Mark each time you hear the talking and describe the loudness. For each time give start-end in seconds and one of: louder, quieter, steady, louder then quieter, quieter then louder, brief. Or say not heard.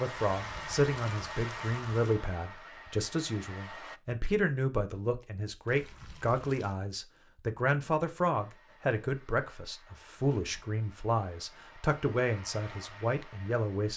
0.0-13.9 steady.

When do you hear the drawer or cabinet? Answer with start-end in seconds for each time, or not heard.
not heard.